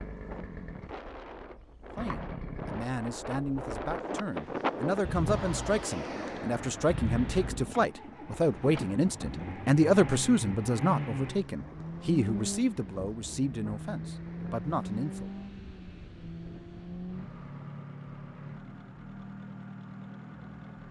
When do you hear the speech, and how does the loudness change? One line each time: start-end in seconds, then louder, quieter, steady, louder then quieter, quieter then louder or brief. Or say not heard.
1.9-15.3 louder then quieter.